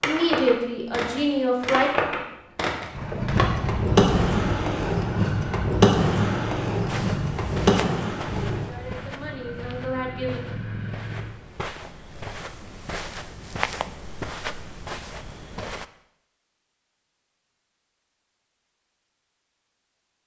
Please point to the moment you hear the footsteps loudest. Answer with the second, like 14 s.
14 s.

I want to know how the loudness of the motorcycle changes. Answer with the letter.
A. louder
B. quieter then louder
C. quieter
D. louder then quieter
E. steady
C.